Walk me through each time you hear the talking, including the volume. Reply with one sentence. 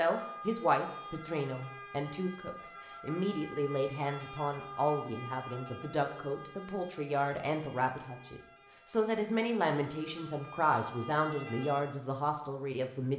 The talking can be heard from 0.0 to 13.1 s, at a steady volume.